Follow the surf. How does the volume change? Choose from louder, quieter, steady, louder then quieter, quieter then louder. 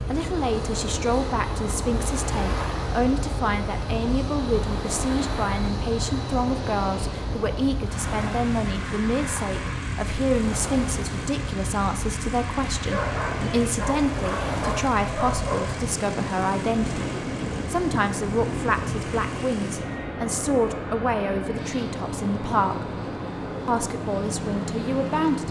steady.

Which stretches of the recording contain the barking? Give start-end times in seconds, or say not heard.
12.9-15.8.